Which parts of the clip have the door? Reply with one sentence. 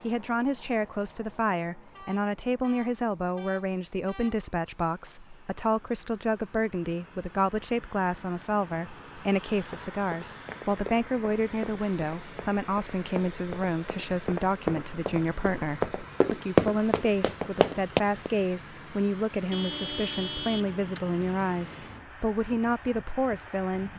You can't hear the door here.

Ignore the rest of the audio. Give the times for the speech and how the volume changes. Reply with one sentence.
The speech can be heard from 0.0 to 23.9 s, at a steady volume.